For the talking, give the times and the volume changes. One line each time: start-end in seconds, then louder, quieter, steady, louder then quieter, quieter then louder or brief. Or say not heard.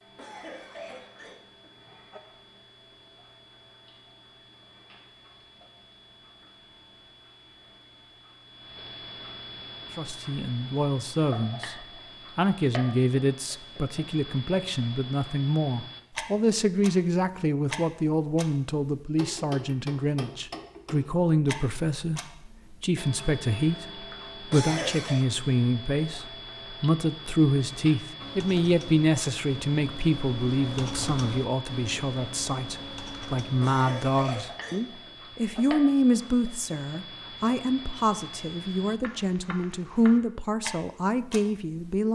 9.9-11.8 brief
12.3-42.0 steady.